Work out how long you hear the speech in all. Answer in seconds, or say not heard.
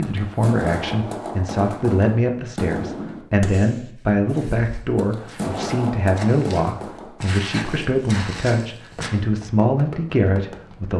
11 s.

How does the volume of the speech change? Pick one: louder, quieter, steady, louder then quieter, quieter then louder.
steady.